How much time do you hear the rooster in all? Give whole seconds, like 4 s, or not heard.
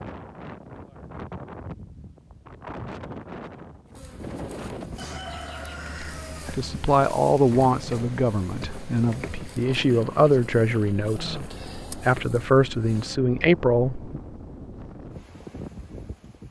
2 s.